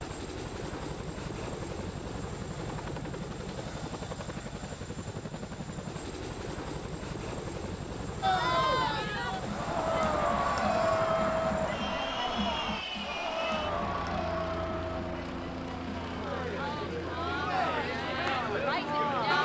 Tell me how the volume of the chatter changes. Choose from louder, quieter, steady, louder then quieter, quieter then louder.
quieter then louder.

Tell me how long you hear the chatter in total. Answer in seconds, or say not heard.
11 s.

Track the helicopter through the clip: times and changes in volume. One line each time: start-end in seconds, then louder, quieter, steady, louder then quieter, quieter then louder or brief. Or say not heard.
0.0-19.3 steady.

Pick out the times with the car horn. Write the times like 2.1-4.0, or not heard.
not heard.